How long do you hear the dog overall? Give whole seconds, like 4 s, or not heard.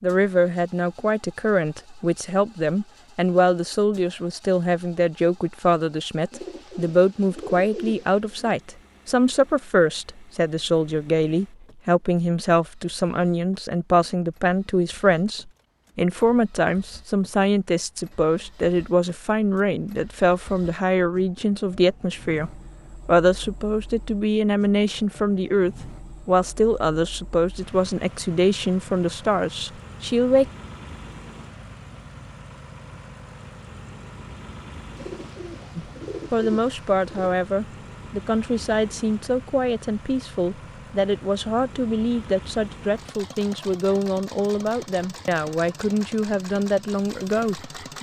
not heard.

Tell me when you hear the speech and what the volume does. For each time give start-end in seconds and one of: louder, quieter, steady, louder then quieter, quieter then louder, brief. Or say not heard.
0.0-30.4 steady
35.8-47.9 steady.